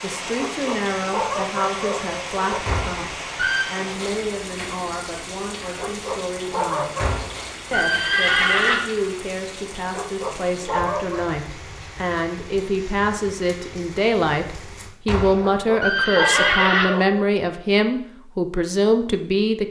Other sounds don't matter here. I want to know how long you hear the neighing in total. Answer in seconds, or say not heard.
5 s.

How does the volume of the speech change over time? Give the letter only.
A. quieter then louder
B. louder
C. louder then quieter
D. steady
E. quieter
B.